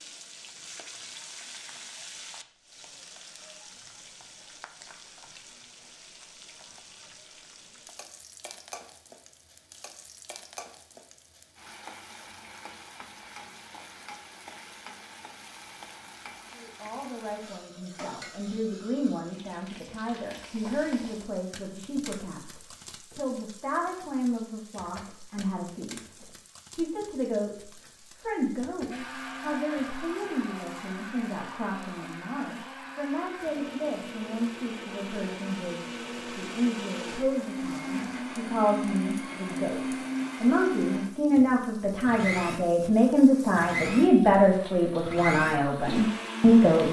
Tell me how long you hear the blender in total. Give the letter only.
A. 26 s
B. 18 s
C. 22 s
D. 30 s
B.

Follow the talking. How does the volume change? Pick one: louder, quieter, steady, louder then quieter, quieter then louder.
louder.